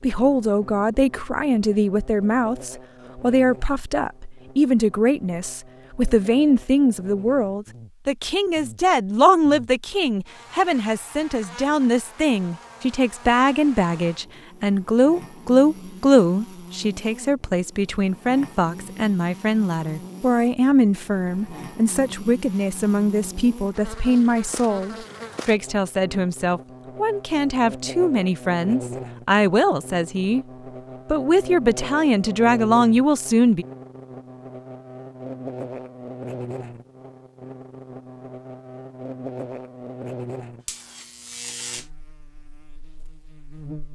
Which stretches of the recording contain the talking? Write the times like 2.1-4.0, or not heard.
0.0-30.4, 31.1-33.6.